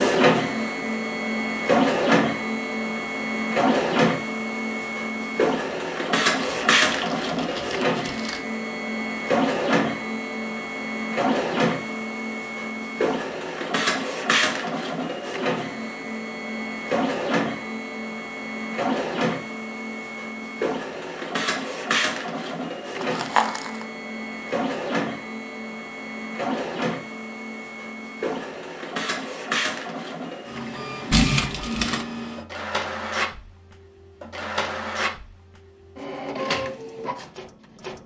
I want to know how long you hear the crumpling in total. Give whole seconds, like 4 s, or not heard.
4 s.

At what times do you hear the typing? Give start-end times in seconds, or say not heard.
not heard.